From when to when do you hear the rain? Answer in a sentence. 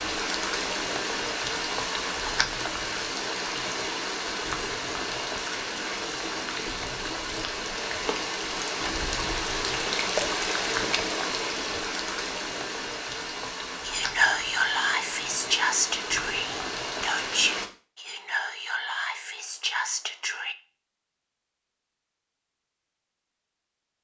The rain can be heard from 0.0 to 17.7 s.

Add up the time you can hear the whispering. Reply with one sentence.
You can hear the whispering for 7 seconds altogether.